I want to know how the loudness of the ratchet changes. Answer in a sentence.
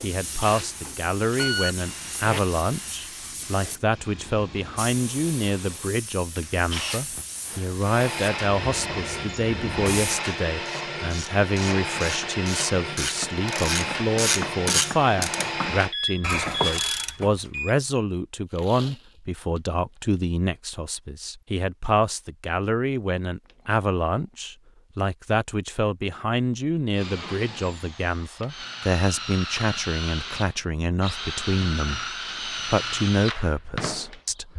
The loudness of the ratchet goes up.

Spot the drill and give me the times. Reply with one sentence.
You can hear the drill from 0.0 to 15.9 s and from 26.9 to 34.5 s.